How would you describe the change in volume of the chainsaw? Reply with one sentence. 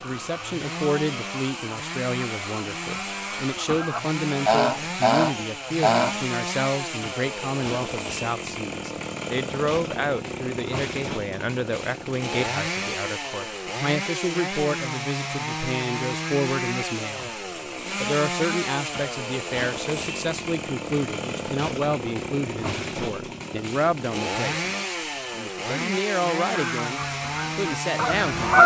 The loudness of the chainsaw stays about the same.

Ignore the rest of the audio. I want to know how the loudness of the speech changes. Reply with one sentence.
The volume of the speech stays about the same.